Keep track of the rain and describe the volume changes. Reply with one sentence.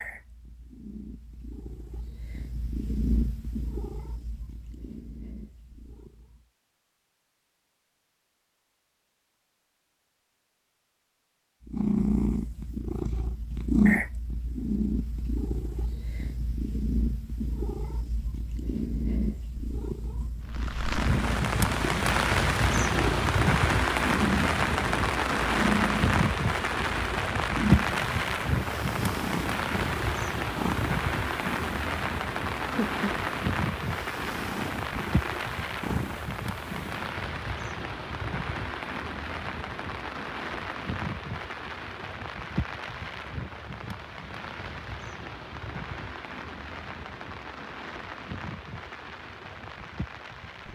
The loudness of the rain goes down.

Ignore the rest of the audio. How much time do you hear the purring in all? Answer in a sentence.
The purring can be heard for 32 seconds in total.